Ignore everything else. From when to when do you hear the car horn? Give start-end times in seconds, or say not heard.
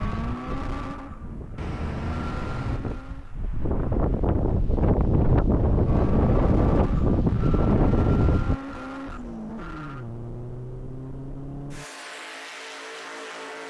1.6-2.8.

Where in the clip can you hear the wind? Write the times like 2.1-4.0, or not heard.
0.0-8.6.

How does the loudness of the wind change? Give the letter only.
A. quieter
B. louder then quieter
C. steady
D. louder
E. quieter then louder
D.